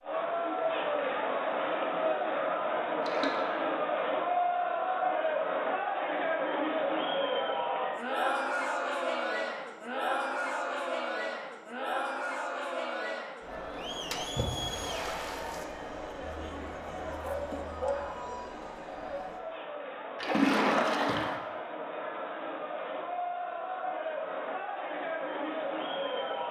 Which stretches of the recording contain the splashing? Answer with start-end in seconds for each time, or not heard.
3.0-3.5, 14.1-15.7, 20.1-21.4.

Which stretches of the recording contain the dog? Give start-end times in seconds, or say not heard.
17.2-18.0.